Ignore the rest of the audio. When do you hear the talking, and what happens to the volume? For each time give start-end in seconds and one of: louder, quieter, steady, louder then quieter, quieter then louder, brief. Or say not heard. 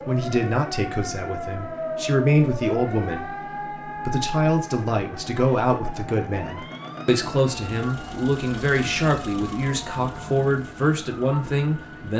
0.1-12.1 steady.